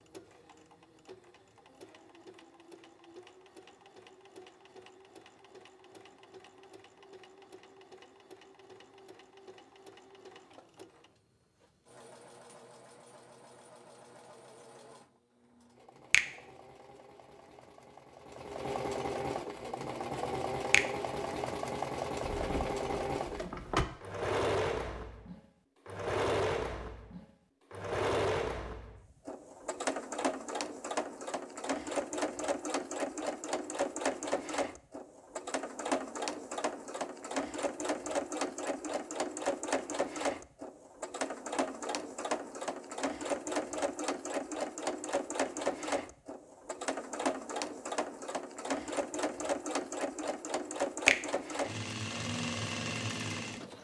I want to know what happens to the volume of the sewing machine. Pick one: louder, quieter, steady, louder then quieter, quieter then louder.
louder.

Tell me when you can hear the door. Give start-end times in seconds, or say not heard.
22.2-23.9.